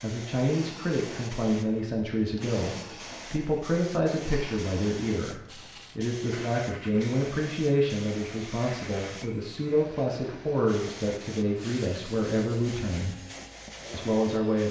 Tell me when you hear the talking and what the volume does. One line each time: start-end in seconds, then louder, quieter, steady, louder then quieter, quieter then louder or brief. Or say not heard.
0.0-13.2 steady
13.9-14.6 brief.